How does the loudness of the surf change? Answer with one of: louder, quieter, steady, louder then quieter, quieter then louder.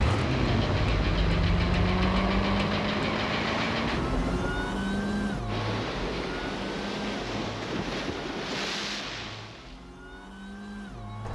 steady.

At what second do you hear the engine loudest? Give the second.
2 s.